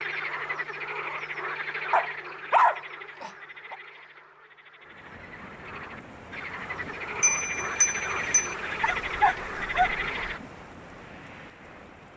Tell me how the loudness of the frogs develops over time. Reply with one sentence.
The loudness of the frogs goes down, then up.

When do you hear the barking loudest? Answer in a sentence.
The volume of the barking peaks at 3 seconds.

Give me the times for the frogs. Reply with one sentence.
The frogs can be heard from 0.0 to 10.4 s.